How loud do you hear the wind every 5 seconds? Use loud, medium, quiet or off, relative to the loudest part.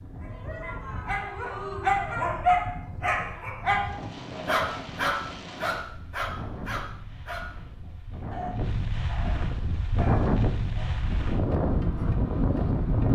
quiet, medium, loud.